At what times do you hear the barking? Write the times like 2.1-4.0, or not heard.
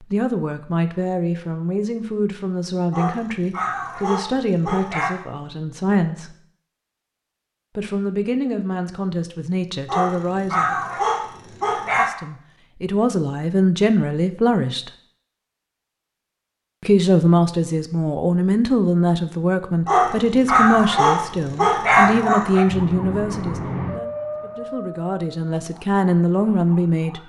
2.9-5.1, 9.8-12.1, 19.9-22.6.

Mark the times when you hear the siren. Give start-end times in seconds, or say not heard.
22.6-27.2.